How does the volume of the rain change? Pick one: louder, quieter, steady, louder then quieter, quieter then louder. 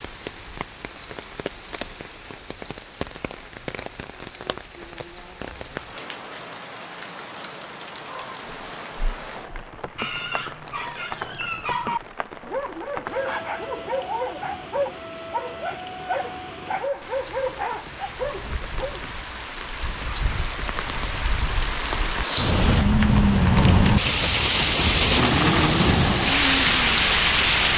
louder.